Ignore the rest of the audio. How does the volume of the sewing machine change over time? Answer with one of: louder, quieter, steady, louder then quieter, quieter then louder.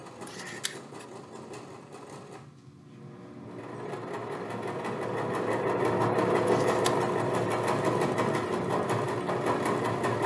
louder.